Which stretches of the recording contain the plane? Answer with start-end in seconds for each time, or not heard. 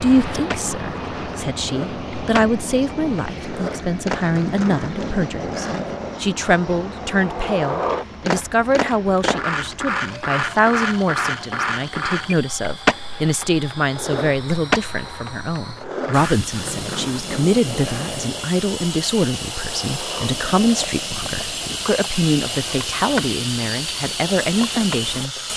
0.0-25.5.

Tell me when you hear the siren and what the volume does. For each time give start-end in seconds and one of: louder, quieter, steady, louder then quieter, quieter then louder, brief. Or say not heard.
not heard.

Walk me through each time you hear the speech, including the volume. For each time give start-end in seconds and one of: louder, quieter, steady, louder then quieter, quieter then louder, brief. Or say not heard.
0.0-25.4 steady.